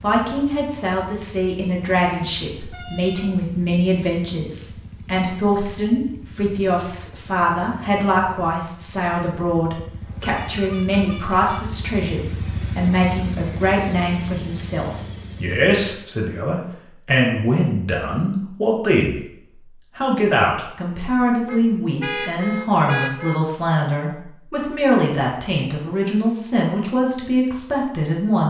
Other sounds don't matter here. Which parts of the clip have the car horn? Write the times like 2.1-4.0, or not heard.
2.7-3.4, 10.0-11.8, 21.4-23.4.